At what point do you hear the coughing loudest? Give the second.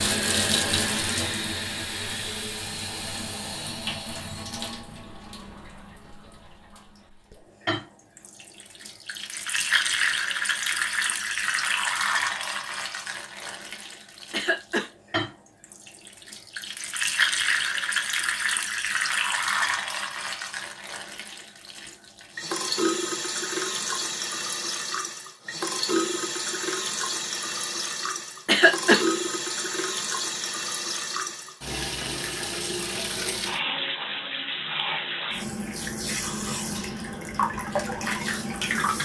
29 s.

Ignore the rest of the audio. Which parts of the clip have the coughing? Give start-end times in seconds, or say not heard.
14.3-14.9, 28.4-29.1.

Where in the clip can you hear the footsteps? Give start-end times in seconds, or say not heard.
not heard.